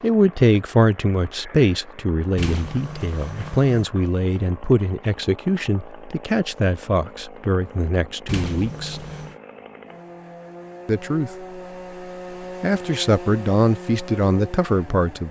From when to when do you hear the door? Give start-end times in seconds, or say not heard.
2.4-3.9, 8.2-9.3.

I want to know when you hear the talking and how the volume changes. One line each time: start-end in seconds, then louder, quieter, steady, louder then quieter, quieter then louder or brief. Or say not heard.
0.0-9.1 quieter
10.8-11.3 brief
12.6-15.2 brief.